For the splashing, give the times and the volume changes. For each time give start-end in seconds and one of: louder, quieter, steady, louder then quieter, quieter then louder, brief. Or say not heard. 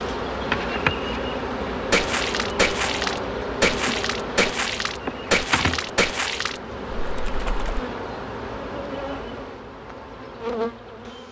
1.9-7.8 quieter.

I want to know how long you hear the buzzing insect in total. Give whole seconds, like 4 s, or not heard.
11 s.